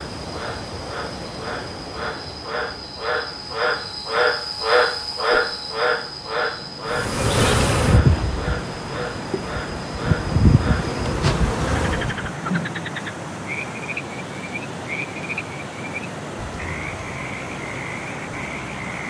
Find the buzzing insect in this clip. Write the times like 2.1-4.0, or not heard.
6.9-12.3.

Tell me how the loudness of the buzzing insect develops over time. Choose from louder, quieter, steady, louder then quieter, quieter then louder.
quieter then louder.